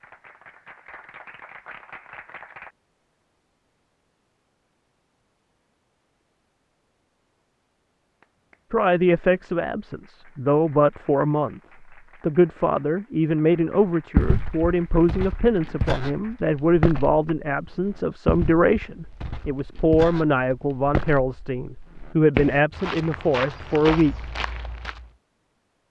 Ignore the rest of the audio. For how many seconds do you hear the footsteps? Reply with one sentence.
You can hear the footsteps for 11 seconds altogether.